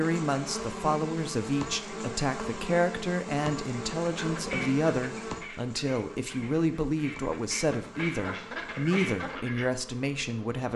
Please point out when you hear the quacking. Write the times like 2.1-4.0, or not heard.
4.0-9.7.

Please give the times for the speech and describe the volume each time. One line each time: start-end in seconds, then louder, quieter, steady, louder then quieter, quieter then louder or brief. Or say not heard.
0.0-10.7 steady.